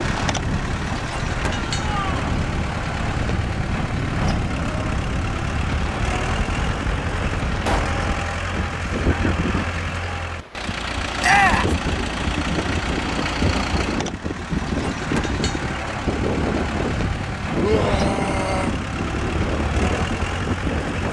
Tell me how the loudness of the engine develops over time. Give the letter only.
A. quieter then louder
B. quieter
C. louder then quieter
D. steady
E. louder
D.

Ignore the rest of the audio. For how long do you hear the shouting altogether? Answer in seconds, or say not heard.
2 s.